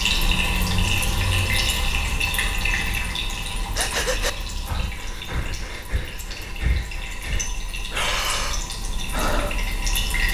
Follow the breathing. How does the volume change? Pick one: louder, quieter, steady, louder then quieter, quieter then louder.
quieter then louder.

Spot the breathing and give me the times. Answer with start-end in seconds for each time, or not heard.
3.7-9.6.